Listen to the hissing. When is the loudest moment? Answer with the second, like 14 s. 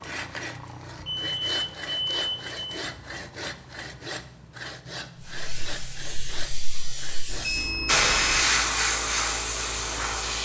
8 s.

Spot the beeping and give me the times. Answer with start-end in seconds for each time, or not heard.
0.9-2.6, 7.2-8.4.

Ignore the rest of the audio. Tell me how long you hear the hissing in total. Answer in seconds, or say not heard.
5 s.